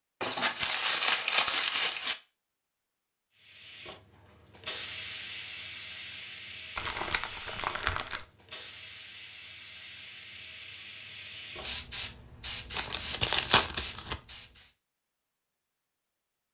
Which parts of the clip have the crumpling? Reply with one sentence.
You can hear the crumpling from 0.2 to 2.1 s, from 6.8 to 8.2 s and from 12.7 to 14.2 s.